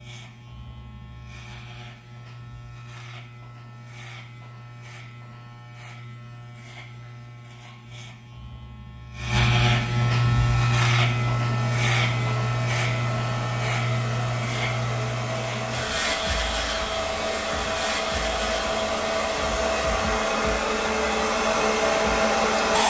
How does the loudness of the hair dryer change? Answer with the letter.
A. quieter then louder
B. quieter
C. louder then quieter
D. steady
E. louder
E.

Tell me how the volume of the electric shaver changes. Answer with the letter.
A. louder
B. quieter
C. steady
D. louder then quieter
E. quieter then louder
D.